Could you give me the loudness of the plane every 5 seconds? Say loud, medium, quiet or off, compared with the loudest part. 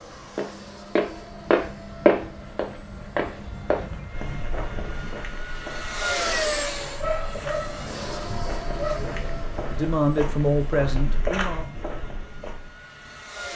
medium, loud, medium.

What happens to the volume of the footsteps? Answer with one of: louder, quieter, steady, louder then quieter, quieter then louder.
quieter then louder.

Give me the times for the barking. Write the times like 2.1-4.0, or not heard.
7.0-9.0.